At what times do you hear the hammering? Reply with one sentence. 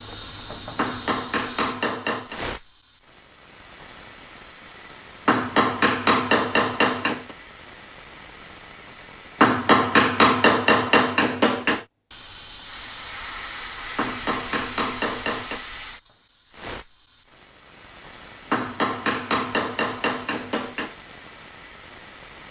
The hammering can be heard from 0.8 to 2.4 s, from 5.2 to 7.3 s, from 9.4 to 11.8 s, from 13.9 to 15.6 s and from 18.5 to 20.9 s.